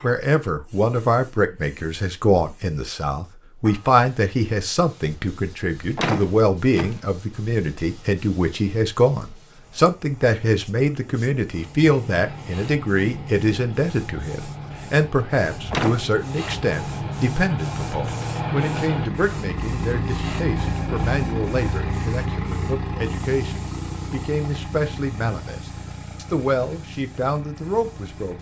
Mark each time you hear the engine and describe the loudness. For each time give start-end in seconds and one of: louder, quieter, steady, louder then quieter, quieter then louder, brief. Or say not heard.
11.5-28.3 louder then quieter.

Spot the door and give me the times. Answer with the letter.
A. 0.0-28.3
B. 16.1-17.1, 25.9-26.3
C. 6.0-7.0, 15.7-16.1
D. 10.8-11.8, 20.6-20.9
C.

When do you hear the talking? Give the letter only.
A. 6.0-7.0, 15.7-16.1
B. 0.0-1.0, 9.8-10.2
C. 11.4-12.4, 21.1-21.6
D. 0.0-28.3
D.